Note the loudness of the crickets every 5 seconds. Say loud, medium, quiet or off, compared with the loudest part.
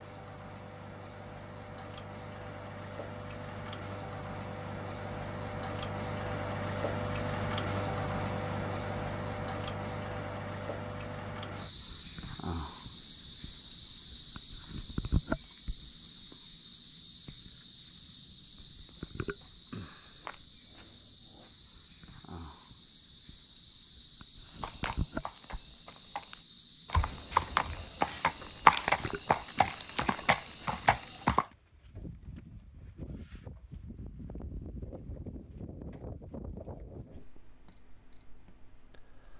medium, loud, medium, medium, quiet, quiet, quiet, quiet.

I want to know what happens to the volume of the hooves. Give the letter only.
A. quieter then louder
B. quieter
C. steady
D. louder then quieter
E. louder
D.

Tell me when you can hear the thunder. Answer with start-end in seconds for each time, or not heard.
not heard.